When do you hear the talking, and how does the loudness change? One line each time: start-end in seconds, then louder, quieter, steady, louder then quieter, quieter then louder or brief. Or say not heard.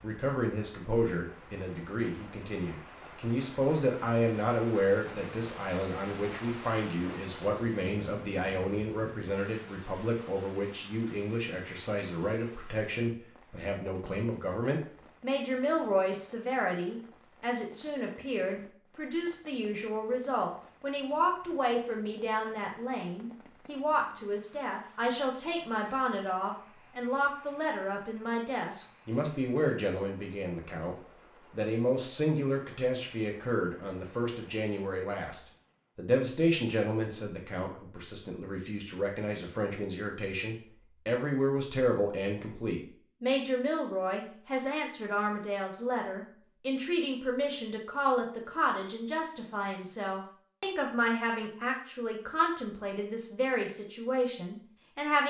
0.0-55.2 steady.